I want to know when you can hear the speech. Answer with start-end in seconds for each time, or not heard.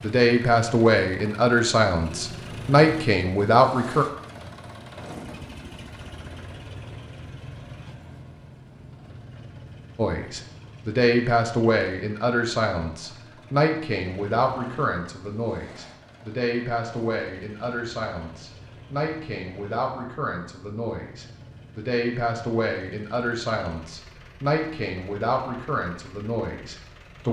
0.0-4.0, 9.9-27.2.